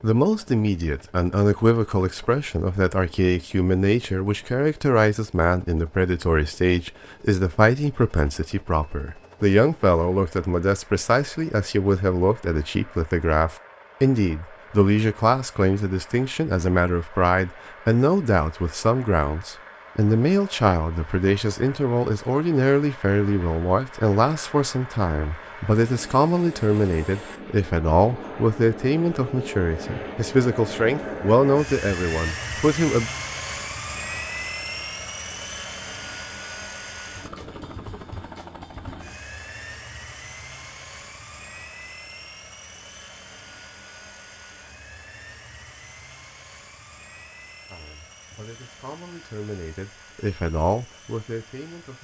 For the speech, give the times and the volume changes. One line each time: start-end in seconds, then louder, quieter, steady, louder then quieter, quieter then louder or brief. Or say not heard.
0.0-33.1 steady
47.7-51.9 louder then quieter.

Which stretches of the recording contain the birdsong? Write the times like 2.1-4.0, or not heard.
not heard.